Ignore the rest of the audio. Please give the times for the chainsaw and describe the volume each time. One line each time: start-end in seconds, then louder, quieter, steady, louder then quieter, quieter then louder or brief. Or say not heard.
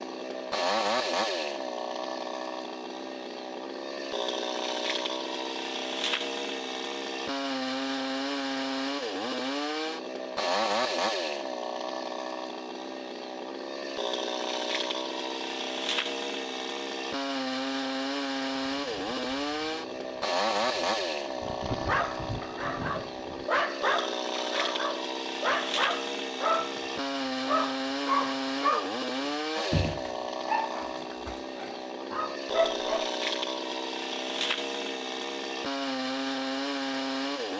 0.0-37.5 steady.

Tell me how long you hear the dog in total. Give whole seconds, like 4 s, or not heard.
11 s.